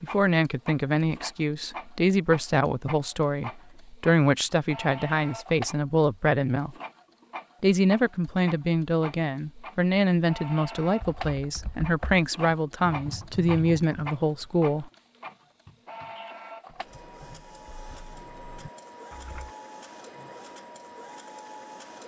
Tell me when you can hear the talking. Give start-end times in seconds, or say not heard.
0.0-6.8, 7.6-14.9.